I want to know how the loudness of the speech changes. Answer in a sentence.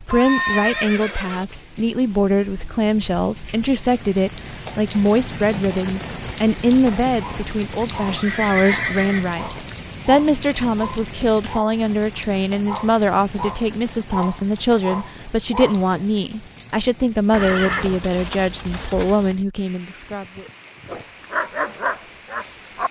The volume of the speech stays about the same.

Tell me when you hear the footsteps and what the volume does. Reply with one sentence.
The footsteps can't be heard in this clip.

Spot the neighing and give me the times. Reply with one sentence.
You can hear the neighing from 0.1 to 1.4 s, from 8.2 to 9.3 s and from 17.3 to 19.4 s.